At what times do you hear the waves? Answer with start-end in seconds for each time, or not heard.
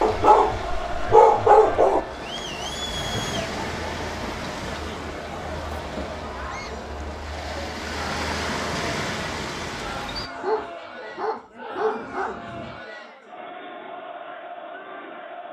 0.0-10.3.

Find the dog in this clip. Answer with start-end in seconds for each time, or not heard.
0.0-2.0, 10.3-12.8.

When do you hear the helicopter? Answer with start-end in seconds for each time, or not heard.
not heard.